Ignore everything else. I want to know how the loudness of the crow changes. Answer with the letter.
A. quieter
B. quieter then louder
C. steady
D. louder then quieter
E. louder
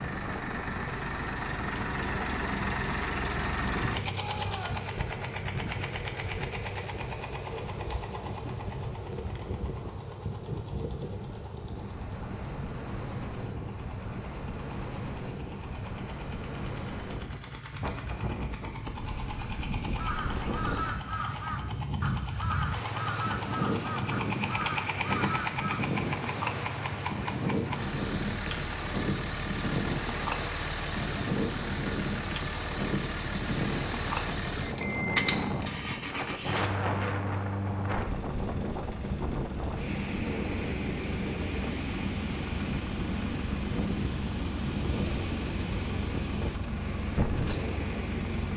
C.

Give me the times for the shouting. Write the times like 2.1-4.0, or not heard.
4.1-5.0.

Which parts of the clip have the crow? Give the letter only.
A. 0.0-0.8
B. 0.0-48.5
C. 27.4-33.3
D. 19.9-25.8
D.